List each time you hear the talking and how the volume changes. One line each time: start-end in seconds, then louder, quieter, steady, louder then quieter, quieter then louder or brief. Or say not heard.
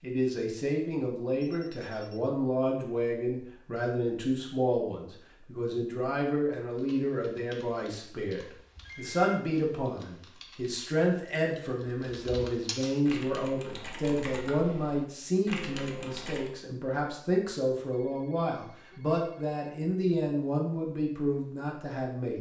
0.0-22.3 steady.